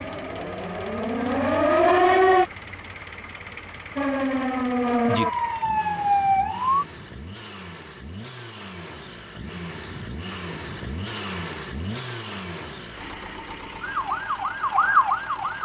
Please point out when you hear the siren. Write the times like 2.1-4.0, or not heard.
0.0-2.5, 4.0-6.8, 13.8-15.6.